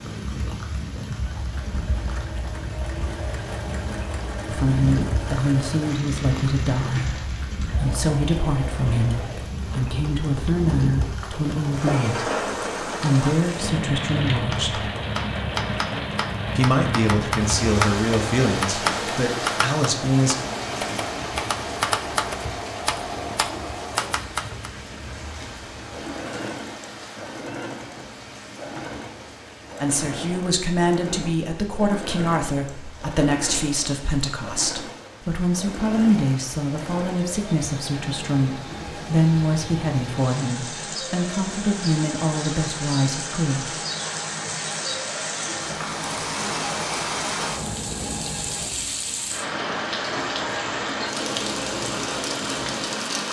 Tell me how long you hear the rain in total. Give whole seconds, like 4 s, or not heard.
53 s.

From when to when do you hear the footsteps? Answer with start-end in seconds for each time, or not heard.
not heard.